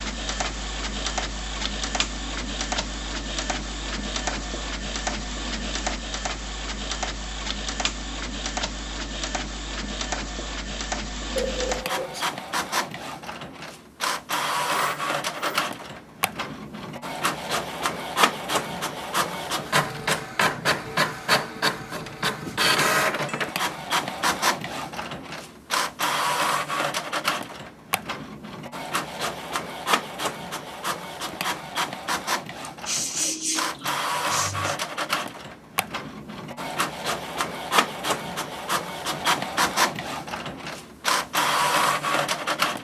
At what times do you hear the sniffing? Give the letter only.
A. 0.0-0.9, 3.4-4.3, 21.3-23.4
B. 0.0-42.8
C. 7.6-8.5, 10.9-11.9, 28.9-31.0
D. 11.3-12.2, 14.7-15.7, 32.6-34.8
D.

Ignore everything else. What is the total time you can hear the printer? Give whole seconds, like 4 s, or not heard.
43 s.